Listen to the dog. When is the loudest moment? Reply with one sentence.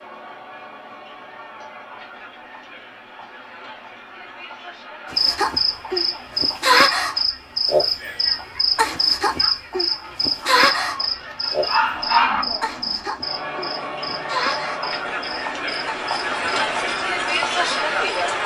The loudest moment of the dog is at 12 seconds.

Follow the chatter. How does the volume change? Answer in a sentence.
The loudness of the chatter goes up.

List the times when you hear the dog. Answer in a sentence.
The dog can be heard from 10.4 to 11.1 s and from 11.7 to 12.4 s.